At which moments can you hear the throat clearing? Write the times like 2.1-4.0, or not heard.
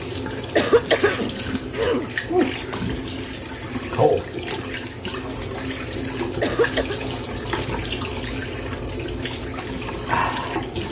0.3-2.1, 6.2-7.0.